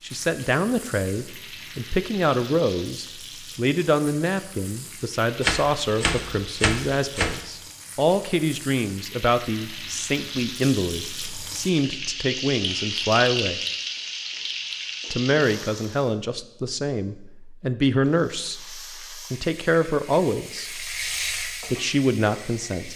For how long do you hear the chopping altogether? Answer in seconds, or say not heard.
2 s.